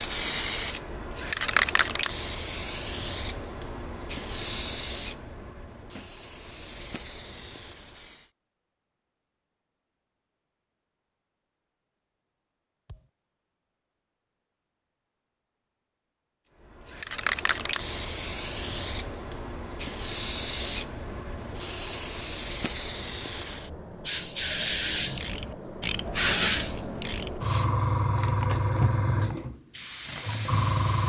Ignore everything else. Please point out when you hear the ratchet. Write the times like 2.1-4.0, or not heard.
24.6-27.4.